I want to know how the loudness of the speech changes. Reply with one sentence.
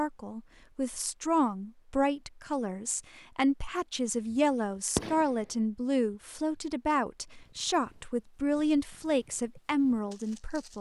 The volume of the speech stays about the same.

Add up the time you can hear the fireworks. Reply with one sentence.
The fireworks can be heard for 2 seconds in total.